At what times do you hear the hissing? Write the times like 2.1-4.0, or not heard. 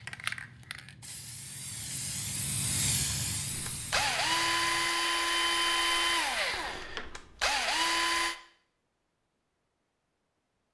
0.0-4.9.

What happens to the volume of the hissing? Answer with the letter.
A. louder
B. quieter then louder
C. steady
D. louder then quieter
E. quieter
D.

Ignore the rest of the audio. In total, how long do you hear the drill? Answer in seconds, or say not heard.
5 s.